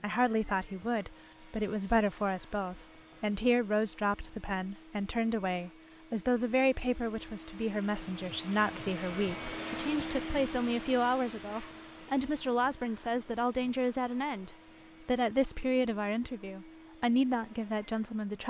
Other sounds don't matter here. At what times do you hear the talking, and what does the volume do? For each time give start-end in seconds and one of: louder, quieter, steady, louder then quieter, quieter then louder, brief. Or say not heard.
0.0-18.4 steady.